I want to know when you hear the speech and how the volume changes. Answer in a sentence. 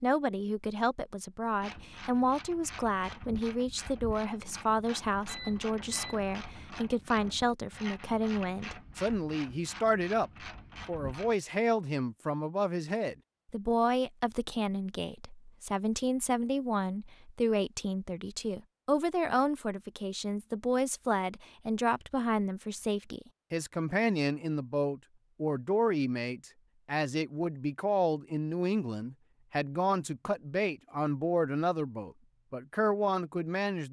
You can hear the speech from 0.0 to 33.8 s, at a steady volume.